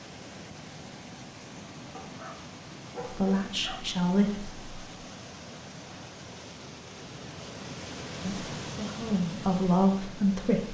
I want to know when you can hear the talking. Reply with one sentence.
The talking can be heard from 3.1 to 4.6 s and from 8.2 to 10.7 s.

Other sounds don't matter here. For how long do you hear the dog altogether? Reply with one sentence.
You can hear the dog for 2 seconds altogether.